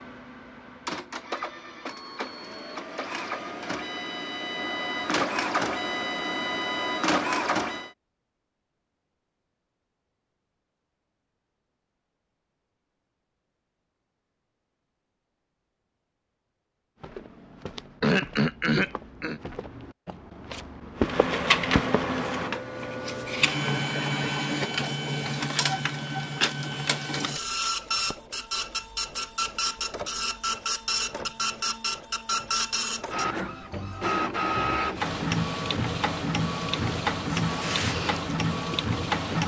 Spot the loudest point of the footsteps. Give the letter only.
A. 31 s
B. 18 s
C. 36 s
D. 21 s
D.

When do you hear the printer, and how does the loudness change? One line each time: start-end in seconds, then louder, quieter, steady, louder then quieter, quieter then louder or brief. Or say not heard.
0.0-7.9 louder
20.9-39.4 steady.